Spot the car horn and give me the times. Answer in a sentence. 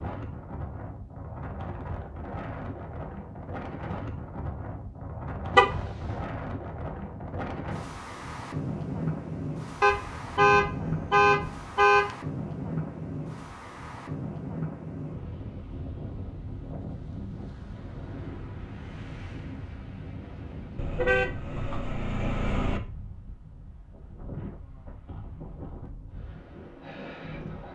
The car horn can be heard from 5.5 to 6.1 s, from 9.8 to 12.2 s and from 20.8 to 22.8 s.